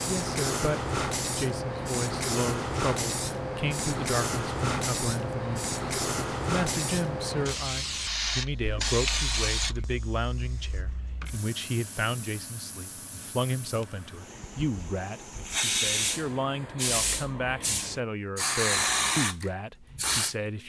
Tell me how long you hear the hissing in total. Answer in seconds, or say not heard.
20 s.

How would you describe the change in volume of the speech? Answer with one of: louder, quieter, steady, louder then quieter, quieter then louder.
steady.